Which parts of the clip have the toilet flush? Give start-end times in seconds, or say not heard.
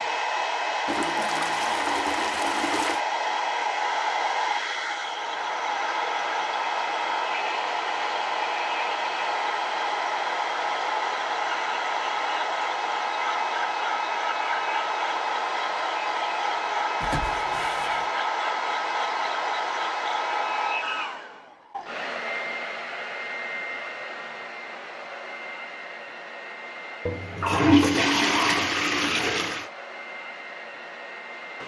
0.8-3.0, 17.0-18.1, 27.1-29.6.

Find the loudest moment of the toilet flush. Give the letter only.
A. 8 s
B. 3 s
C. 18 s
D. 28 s
D.